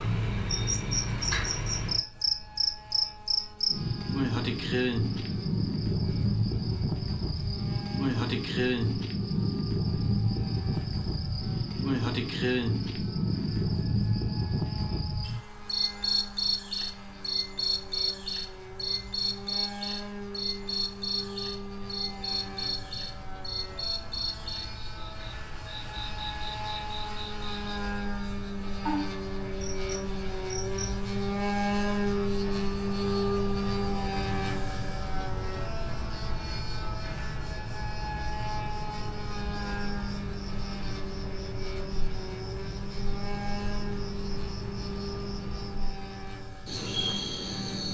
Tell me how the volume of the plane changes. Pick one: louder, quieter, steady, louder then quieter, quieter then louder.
louder then quieter.